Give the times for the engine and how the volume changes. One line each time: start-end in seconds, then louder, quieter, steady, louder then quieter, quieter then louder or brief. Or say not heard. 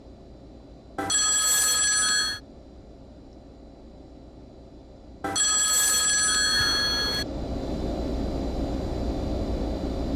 0.0-10.1 louder.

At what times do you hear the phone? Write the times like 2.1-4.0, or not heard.
0.9-2.4, 5.2-7.2.